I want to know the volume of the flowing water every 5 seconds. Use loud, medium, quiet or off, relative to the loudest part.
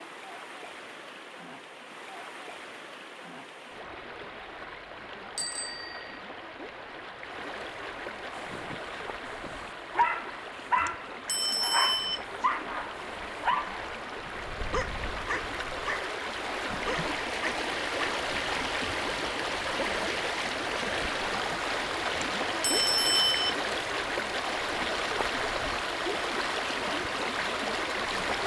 quiet, medium, medium, loud, loud, loud.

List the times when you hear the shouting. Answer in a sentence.
The shouting can't be heard in this clip.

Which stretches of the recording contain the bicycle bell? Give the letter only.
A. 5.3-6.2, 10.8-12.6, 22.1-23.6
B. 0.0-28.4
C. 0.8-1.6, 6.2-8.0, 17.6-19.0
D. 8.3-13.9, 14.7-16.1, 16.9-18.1
A.